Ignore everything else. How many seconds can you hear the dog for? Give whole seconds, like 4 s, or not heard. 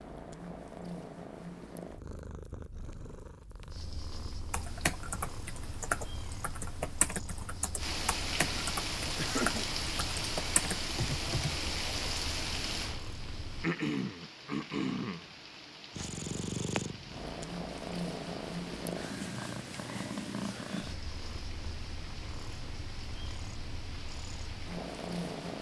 not heard.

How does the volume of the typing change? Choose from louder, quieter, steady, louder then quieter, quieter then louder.
steady.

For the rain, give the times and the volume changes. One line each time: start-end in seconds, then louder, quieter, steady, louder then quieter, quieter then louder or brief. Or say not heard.
7.8-25.5 quieter.